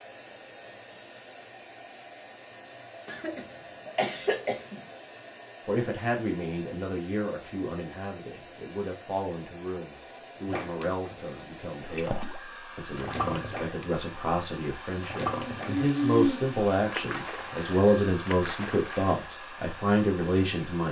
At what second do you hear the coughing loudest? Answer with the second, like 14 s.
16 s.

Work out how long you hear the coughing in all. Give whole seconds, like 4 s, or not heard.
3 s.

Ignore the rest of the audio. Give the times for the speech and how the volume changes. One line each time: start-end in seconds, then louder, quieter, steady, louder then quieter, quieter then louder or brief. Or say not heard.
5.7-20.8 louder.